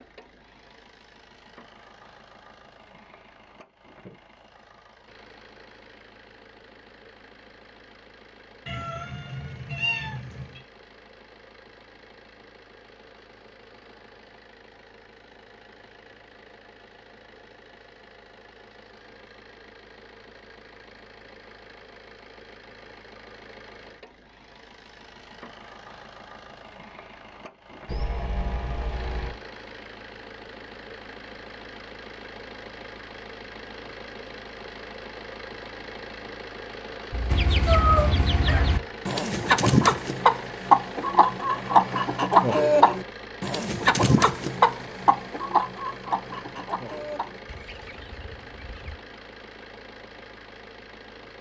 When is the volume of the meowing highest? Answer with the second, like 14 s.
38 s.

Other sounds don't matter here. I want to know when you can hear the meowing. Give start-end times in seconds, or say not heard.
8.7-10.6, 27.9-29.4, 37.6-38.6.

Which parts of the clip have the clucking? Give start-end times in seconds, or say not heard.
37.1-49.0.